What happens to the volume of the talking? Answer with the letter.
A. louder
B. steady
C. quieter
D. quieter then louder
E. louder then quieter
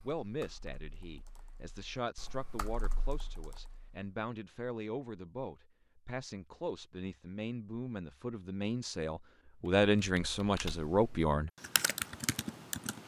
A.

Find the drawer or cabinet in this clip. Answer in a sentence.
The drawer or cabinet can't be heard in this clip.